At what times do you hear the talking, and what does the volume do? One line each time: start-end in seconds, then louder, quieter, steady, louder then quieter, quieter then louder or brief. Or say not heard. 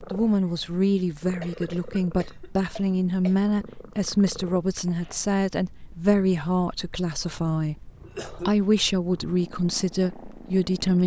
0.0-11.0 steady.